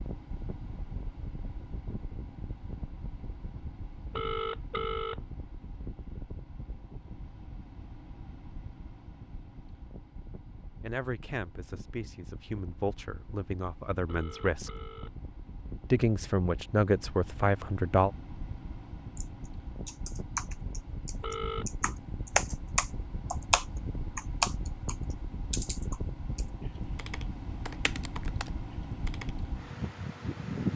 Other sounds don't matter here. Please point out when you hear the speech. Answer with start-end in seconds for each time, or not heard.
10.8-14.7, 15.9-18.1.